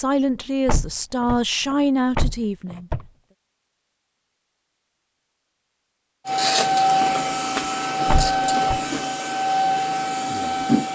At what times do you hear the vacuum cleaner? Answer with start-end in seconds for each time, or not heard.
6.2-10.9.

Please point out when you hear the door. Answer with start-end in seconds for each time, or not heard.
0.7-3.0, 8.1-8.8.